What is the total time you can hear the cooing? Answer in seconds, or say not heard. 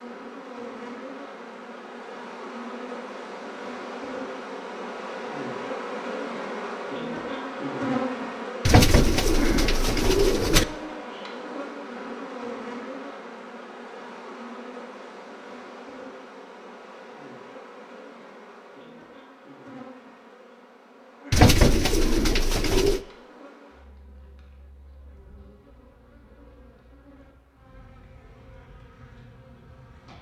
4 s.